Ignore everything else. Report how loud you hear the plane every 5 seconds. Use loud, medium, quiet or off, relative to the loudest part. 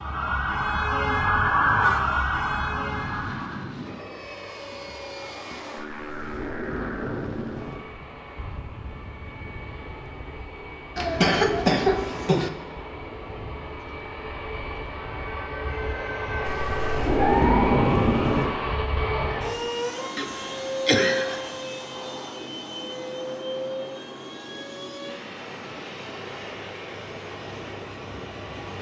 medium, medium, medium, loud, loud, medium.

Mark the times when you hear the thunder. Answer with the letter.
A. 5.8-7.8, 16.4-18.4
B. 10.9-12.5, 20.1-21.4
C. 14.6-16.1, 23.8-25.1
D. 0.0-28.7
A.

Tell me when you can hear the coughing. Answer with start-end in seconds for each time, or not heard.
10.9-12.5, 20.1-21.4.